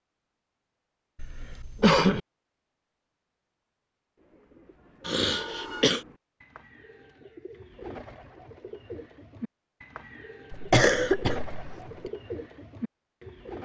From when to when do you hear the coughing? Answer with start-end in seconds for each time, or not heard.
1.2-2.2, 5.0-6.0, 10.5-12.1.